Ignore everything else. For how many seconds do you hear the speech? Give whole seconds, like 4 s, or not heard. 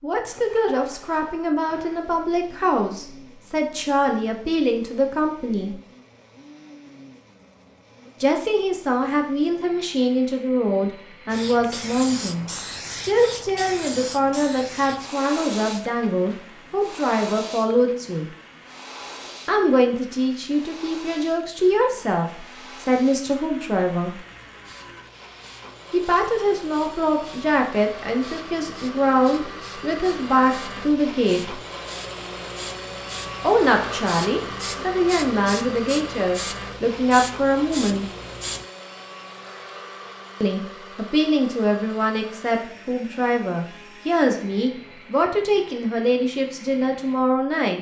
38 s.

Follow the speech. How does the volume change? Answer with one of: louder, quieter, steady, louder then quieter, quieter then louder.
steady.